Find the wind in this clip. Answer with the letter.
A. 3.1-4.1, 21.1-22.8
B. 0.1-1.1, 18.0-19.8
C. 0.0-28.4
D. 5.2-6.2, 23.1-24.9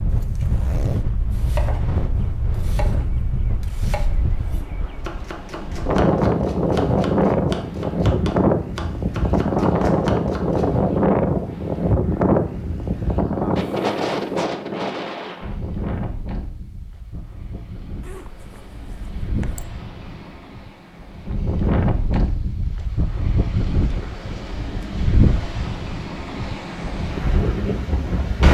C.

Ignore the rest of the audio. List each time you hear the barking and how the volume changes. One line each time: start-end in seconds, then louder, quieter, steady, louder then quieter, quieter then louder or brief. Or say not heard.
not heard.